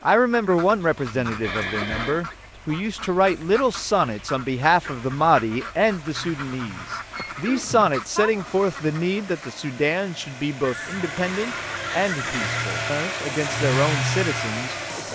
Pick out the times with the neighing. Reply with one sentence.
The neighing can be heard from 1.4 to 2.2 s, from 7.2 to 8.3 s and from 10.6 to 12.7 s.